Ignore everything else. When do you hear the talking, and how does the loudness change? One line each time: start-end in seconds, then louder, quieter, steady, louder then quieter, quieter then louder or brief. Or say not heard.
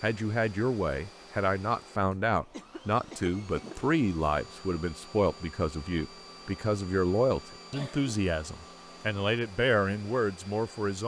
0.0-11.0 steady.